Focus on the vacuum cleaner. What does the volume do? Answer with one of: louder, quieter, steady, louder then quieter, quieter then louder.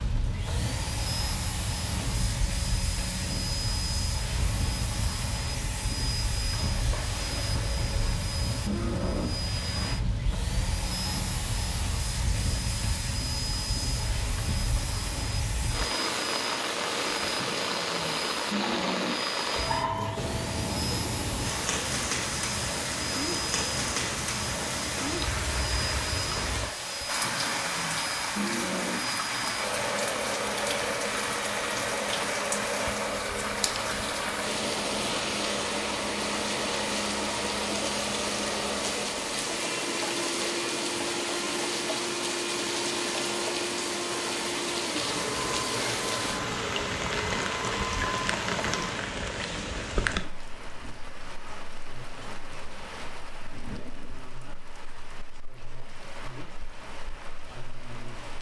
steady.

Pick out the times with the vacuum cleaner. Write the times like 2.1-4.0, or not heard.
0.0-49.0.